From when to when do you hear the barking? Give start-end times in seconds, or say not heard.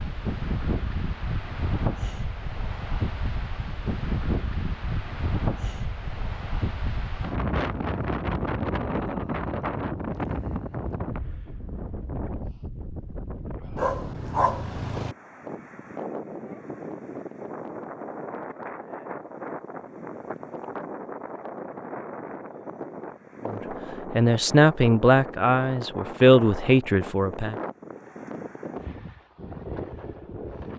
13.8-15.2.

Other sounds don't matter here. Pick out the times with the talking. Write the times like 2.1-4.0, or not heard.
23.4-27.6.